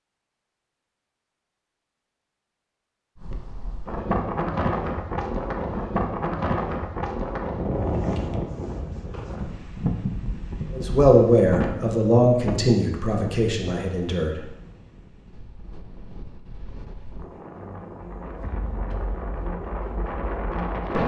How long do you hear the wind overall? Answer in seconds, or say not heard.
18 s.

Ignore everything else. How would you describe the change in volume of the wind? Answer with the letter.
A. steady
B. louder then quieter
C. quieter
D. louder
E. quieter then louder
E.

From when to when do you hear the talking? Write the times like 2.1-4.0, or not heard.
10.8-14.4.